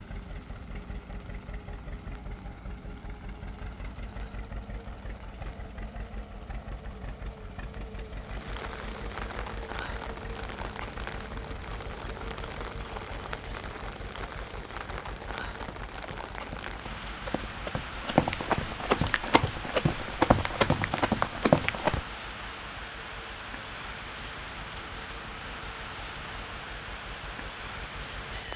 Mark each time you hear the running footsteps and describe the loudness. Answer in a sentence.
The running footsteps can be heard from 15.6 to 22.1 s, getting louder.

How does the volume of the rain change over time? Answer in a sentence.
The loudness of the rain goes up.